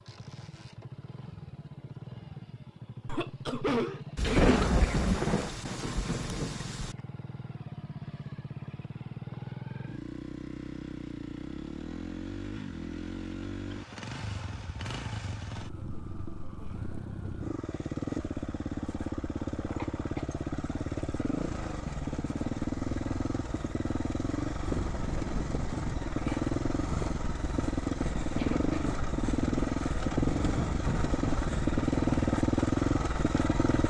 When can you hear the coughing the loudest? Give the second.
4 s.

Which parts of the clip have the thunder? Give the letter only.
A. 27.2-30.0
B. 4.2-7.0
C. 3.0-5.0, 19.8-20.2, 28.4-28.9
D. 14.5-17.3
B.